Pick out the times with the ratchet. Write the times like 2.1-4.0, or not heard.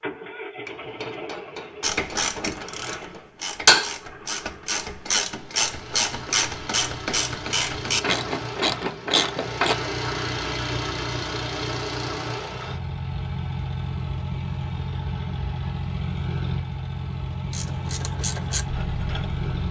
1.8-9.8, 17.5-19.6.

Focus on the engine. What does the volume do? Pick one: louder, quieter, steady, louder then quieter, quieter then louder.
louder.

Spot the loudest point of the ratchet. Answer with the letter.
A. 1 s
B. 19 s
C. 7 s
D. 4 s
D.